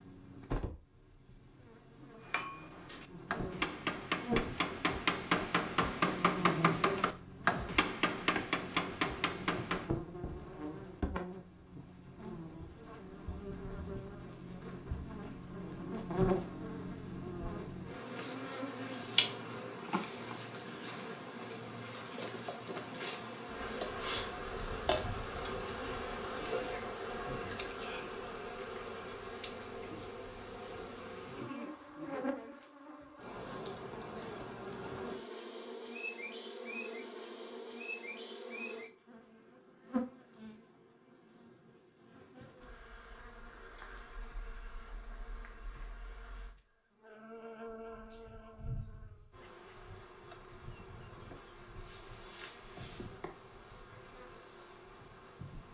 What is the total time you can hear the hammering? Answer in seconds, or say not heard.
8 s.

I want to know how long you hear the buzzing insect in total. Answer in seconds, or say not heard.
56 s.